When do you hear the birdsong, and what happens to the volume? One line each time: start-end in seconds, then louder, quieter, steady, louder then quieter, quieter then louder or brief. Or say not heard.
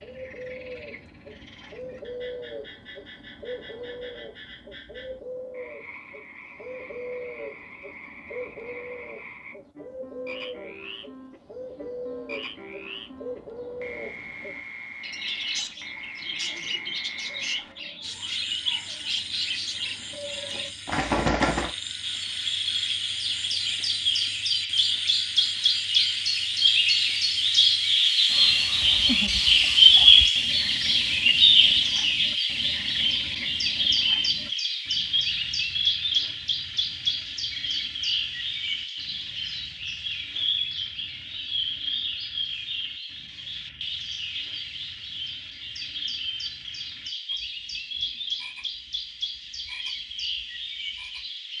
0.0-51.5 louder then quieter.